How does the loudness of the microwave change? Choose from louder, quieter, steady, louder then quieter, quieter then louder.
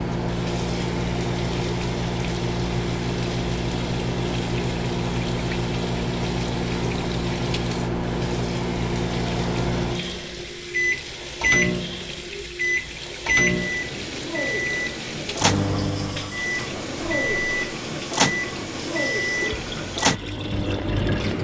steady.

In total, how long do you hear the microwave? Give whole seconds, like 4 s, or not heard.
21 s.